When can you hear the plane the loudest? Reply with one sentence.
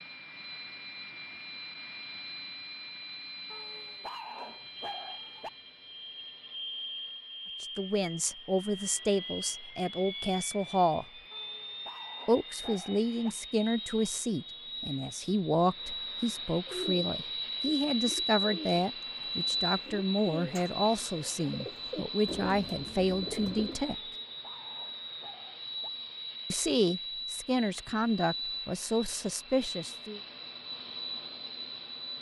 The loudest moment of the plane is at 18 seconds.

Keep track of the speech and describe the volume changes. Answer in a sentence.
The volume of the speech stays about the same.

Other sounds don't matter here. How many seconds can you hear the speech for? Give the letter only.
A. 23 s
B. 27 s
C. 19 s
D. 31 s
C.